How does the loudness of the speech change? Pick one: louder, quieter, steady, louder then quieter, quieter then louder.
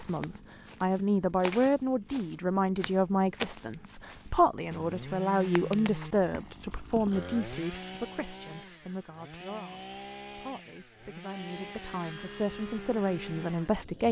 quieter then louder.